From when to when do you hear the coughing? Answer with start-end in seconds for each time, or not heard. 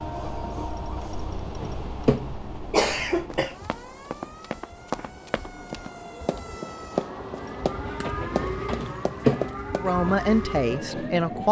1.6-3.5, 8.8-9.5.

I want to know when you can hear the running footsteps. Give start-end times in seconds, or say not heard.
3.3-9.9.